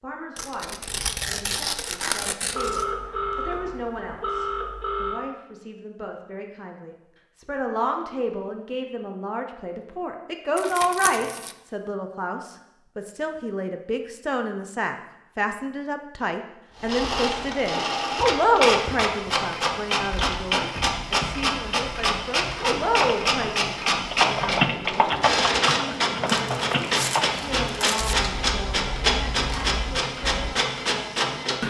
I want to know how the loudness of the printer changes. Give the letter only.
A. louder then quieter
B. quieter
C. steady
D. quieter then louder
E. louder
C.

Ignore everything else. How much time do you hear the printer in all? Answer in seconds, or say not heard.
15 s.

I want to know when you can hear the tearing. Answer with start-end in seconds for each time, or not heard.
0.3-2.9, 10.6-11.6, 26.3-28.1.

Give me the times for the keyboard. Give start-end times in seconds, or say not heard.
22.8-30.6.